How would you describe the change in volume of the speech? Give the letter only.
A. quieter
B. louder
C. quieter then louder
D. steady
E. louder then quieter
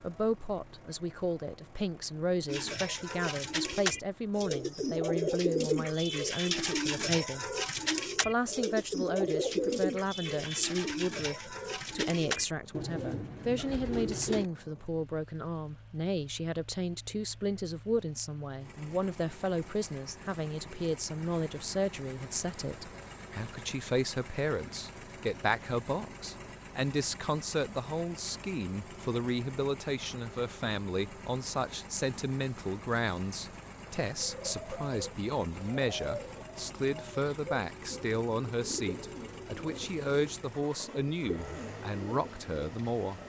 D.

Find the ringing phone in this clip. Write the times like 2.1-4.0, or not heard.
not heard.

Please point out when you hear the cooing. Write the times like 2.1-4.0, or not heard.
2.5-14.4, 34.3-43.2.